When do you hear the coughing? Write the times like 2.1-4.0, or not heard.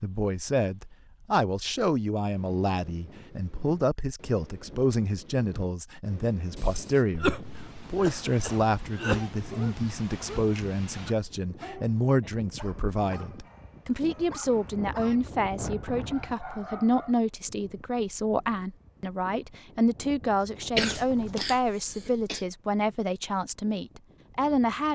6.5-9.2, 20.8-22.4.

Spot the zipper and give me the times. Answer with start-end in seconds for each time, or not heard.
not heard.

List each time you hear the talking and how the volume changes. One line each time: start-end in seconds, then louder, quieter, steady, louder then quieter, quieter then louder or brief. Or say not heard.
0.0-24.9 steady.